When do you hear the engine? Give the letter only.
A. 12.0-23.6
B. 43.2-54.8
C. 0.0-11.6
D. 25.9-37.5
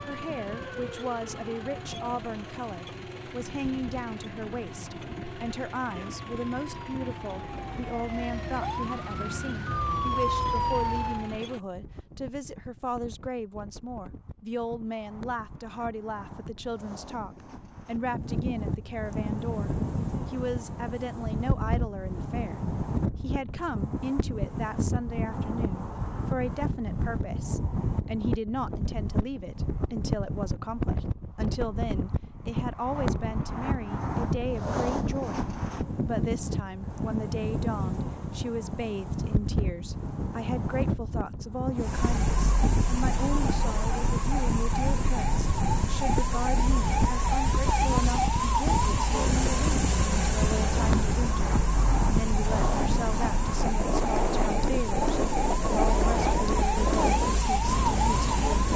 C.